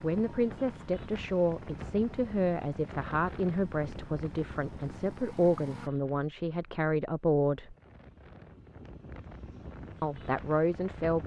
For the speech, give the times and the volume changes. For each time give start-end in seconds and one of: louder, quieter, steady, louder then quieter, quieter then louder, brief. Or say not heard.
0.0-7.8 steady
10.0-11.2 brief.